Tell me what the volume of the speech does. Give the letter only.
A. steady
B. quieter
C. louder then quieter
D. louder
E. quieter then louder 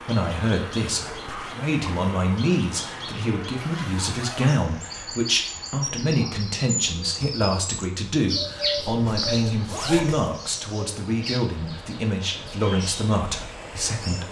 A.